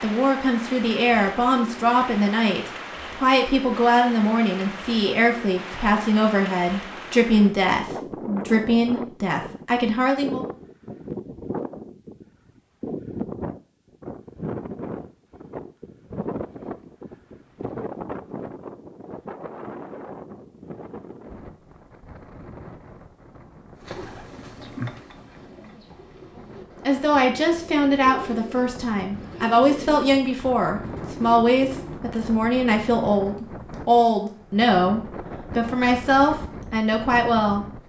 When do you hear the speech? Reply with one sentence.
You can hear the speech from 0.0 to 10.4 s and from 26.9 to 37.8 s.